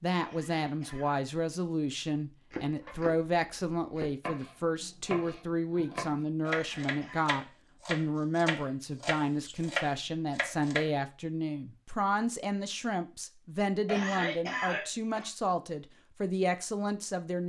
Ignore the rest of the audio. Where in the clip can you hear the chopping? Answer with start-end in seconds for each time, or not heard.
2.5-10.9.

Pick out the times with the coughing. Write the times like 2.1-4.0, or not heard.
0.2-1.2, 6.4-7.3, 13.8-15.3.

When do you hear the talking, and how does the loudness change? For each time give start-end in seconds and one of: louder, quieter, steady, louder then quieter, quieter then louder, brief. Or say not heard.
0.0-17.4 steady.